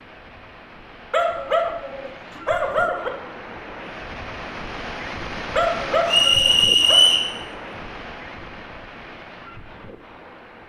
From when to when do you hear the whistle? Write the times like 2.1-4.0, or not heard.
6.0-7.3.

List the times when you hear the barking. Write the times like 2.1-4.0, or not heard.
1.1-3.1, 5.5-7.0.